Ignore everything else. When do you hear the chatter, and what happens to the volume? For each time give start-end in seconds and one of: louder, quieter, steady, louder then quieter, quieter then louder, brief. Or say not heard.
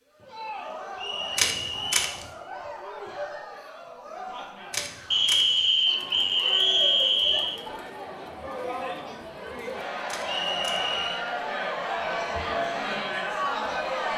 0.1-14.1 louder.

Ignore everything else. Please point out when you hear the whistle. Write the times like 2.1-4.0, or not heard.
0.9-2.0, 5.1-7.6, 10.2-11.2.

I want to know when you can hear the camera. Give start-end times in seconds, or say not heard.
1.4-2.2, 4.7-5.6, 10.1-10.8.